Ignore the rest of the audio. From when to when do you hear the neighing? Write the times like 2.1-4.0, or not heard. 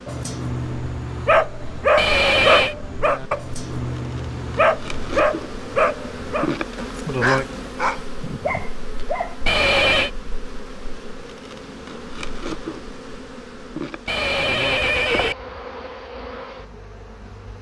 1.9-2.8, 9.4-10.1, 14.1-15.3.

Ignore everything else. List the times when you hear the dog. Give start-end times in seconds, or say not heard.
0.1-9.3.